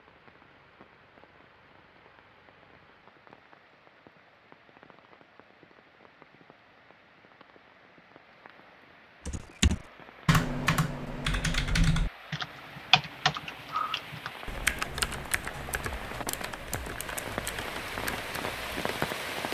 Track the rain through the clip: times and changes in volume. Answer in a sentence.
The rain can be heard from 0.0 to 19.4 s, getting louder.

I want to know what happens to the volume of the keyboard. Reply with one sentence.
The loudness of the keyboard goes down.